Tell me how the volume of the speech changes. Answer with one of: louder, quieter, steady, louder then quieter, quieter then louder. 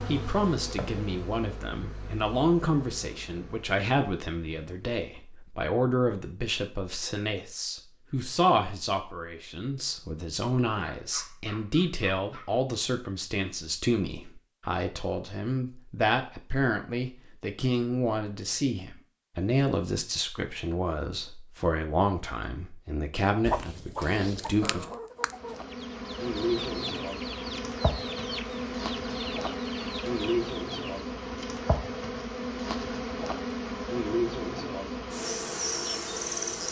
steady.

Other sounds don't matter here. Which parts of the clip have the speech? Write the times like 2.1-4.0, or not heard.
0.1-24.9.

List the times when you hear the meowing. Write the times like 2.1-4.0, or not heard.
not heard.